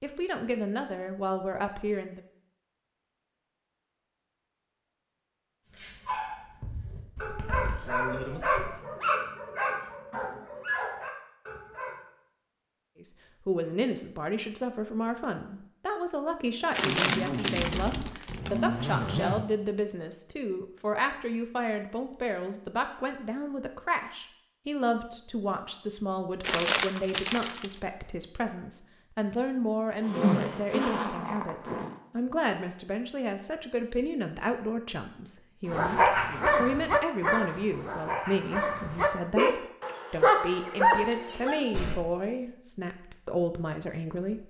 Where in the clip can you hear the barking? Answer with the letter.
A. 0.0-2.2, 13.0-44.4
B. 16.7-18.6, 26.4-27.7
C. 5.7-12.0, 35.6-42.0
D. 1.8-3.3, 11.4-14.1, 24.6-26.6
C.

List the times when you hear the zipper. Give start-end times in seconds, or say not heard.
7.2-8.7, 16.8-19.4, 30.0-31.9.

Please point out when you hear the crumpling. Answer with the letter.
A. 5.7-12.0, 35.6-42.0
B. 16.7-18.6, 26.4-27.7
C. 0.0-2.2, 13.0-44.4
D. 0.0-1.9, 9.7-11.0
B.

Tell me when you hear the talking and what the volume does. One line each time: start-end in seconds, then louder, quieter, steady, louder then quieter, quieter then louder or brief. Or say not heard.
0.0-2.2 brief
13.0-44.4 steady.